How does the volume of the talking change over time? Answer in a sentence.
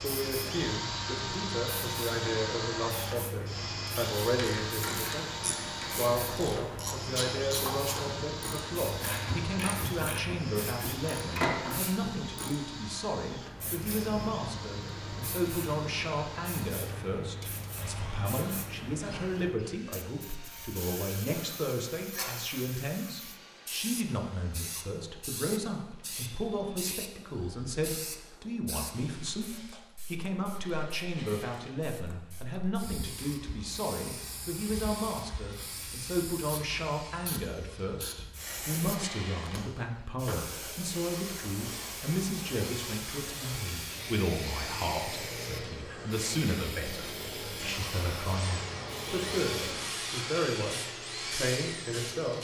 The loudness of the talking stays about the same.